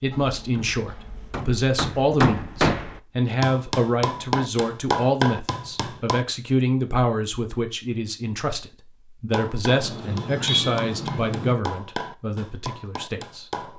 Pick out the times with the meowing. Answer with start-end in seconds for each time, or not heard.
9.7-11.6.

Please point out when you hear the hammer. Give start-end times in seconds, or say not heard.
0.1-6.2, 9.3-13.7.